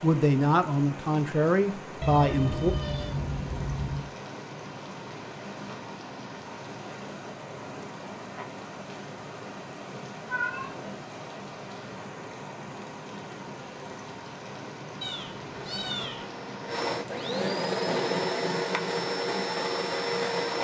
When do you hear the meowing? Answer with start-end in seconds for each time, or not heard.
2.0-4.0, 10.2-10.8, 15.0-16.2.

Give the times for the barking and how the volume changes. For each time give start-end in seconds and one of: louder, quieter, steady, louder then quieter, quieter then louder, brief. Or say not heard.
not heard.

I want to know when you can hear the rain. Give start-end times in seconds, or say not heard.
0.0-17.6.